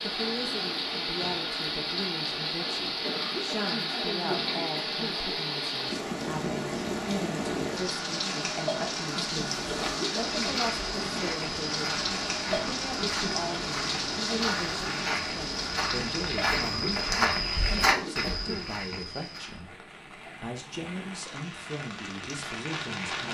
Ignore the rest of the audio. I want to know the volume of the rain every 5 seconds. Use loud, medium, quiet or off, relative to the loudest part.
loud, loud, loud, medium, medium.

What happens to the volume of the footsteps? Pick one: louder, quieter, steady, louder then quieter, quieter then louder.
louder.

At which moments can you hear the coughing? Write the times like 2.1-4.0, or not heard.
3.0-5.2, 9.7-11.3, 16.5-18.8.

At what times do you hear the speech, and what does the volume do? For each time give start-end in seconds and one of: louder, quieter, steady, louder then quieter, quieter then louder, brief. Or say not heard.
0.0-23.2 steady.